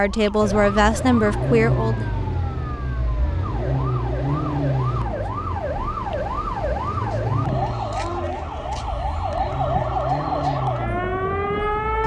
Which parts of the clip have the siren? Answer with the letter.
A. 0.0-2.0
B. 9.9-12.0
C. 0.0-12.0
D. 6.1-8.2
C.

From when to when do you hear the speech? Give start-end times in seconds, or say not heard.
0.0-2.0.